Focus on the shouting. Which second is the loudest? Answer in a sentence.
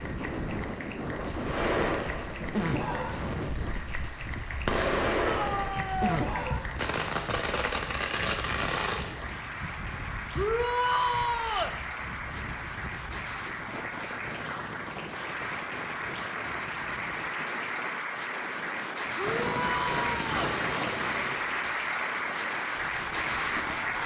The volume of the shouting peaks at 11 seconds.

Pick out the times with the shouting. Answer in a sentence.
The shouting can be heard from 5.2 to 6.2 s, from 10.3 to 11.8 s and from 19.1 to 20.5 s.